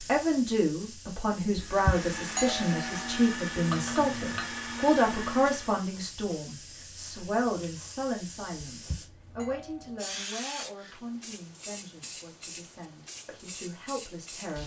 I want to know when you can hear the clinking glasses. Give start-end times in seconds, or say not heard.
3.6-4.5.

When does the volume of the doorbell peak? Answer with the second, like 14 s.
2 s.